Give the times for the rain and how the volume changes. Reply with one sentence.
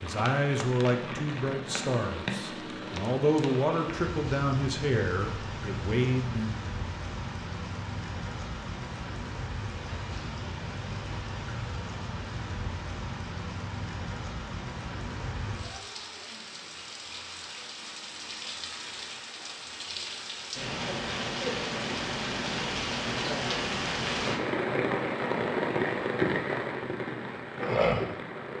You can hear the rain from 0.0 to 28.5 s, getting louder.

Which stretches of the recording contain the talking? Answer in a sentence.
The talking can be heard from 0.0 to 6.5 s.